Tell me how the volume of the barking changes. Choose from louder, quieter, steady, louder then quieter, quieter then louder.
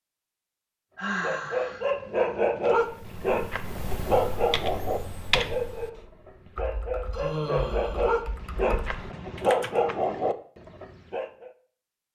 quieter then louder.